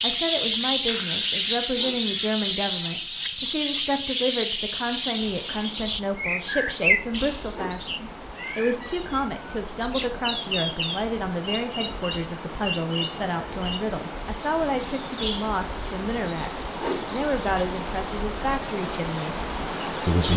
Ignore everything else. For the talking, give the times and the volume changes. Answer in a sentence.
You can hear the talking from 0.0 to 20.3 s, at a steady volume.